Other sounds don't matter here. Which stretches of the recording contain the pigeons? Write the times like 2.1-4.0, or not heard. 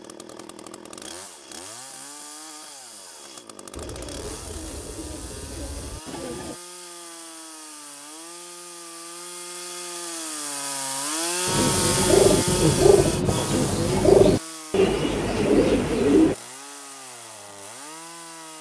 3.7-6.5, 11.4-16.4.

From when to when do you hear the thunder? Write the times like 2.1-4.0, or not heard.
not heard.